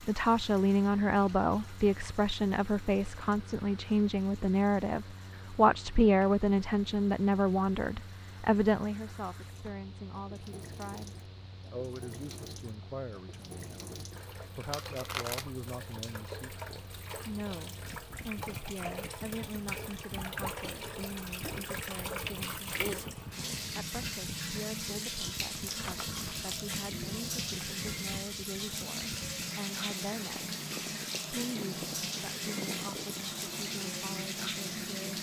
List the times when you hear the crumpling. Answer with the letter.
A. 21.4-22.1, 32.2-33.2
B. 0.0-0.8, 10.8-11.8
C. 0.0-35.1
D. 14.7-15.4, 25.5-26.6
D.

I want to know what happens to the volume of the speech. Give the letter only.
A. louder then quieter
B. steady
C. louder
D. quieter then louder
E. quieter
E.